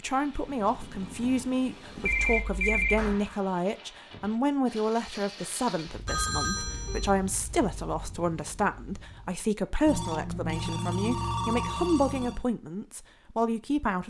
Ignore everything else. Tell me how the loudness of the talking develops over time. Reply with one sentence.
The volume of the talking stays about the same.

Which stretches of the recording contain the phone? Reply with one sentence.
You can hear the phone from 2.0 to 3.1 s, from 6.0 to 7.1 s and from 9.8 to 12.4 s.